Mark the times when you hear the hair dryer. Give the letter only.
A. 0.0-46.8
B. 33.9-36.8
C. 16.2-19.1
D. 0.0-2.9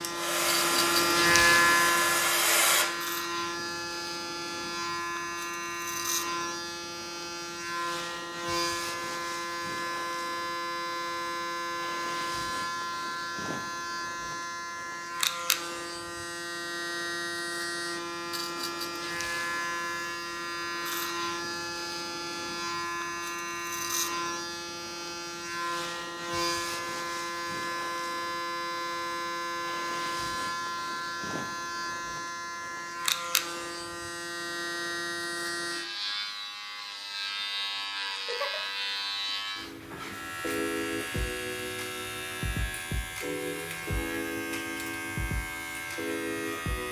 D.